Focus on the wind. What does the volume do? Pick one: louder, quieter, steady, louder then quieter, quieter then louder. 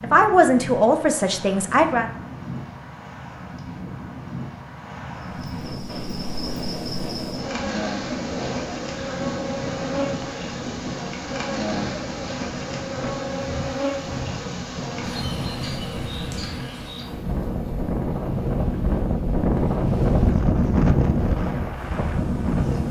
louder.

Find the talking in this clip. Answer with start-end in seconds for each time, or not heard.
0.0-2.0.